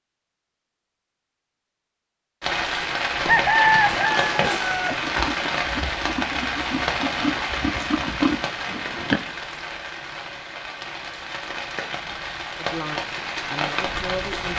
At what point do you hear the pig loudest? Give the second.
8 s.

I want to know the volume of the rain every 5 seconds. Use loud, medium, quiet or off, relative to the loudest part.
loud, loud, medium.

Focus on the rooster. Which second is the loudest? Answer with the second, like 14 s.
4 s.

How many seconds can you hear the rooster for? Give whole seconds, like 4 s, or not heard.
2 s.